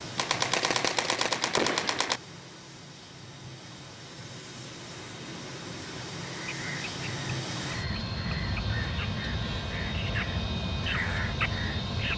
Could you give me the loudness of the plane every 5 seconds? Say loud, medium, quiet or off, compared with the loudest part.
medium, loud, loud.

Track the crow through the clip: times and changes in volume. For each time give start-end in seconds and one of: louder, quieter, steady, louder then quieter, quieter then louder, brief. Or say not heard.
6.2-12.1 louder.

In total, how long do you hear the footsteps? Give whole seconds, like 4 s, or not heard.
not heard.